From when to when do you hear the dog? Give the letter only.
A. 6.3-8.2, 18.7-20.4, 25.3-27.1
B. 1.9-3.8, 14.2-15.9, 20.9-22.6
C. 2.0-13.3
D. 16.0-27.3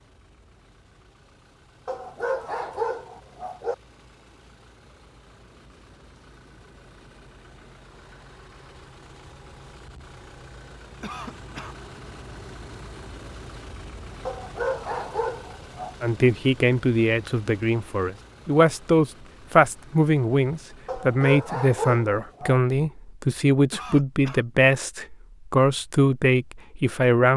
B.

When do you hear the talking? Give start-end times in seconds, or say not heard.
16.0-27.3.